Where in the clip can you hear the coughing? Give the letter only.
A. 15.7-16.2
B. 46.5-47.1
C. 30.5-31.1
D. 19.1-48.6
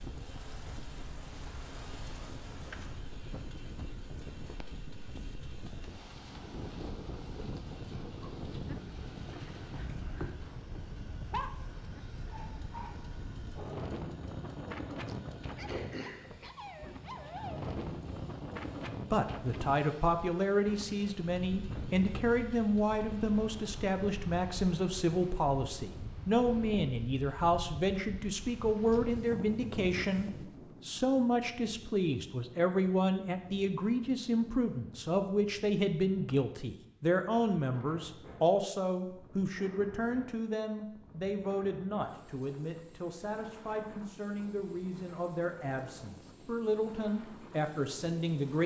A.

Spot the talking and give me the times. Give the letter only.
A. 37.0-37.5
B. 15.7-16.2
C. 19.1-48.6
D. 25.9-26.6
C.